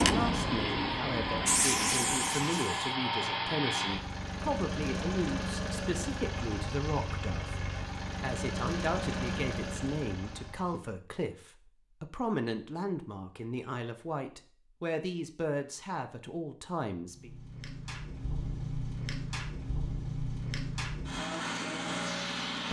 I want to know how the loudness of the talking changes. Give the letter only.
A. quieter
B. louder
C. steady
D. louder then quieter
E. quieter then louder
C.